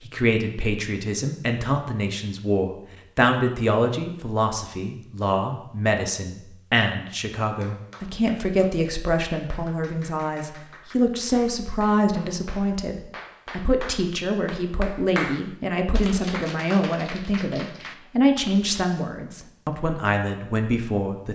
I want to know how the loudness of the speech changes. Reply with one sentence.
The volume of the speech stays about the same.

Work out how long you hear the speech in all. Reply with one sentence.
The speech can be heard for 21 seconds in total.